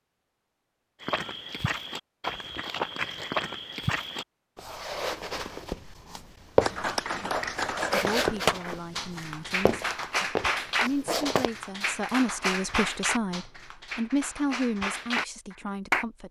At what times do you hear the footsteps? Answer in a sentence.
You can hear the footsteps from 1.0 to 11.5 s.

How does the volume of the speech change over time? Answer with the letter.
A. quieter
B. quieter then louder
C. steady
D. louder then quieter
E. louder
E.